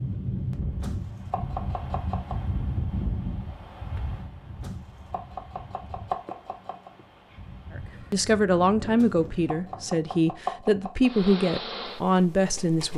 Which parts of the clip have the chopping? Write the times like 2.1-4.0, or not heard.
0.8-2.4, 4.6-6.9, 8.9-11.1.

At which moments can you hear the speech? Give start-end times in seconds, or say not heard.
7.8-12.9.